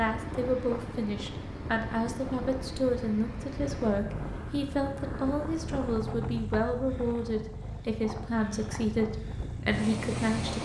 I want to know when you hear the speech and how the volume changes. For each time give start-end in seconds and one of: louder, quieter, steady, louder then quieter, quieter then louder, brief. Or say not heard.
0.0-10.6 steady.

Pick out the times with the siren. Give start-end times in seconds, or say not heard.
not heard.